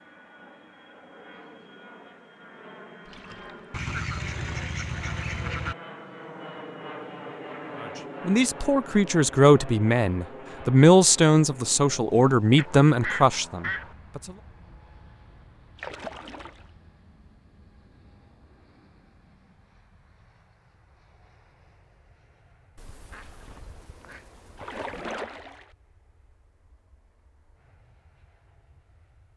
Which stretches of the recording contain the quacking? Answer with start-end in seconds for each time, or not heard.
3.7-5.8, 12.6-13.9, 22.8-25.1.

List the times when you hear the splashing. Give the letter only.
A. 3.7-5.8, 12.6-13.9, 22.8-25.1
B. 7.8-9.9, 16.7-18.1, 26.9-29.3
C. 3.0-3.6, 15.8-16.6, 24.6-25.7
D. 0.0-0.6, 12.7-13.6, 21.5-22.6
C.